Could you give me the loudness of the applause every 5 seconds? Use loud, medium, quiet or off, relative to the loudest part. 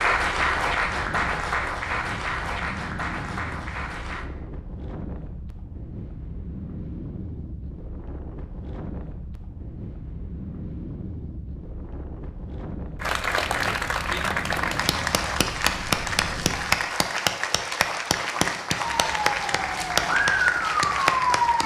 loud, off, loud, loud, loud.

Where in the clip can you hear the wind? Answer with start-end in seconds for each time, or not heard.
0.0-16.8.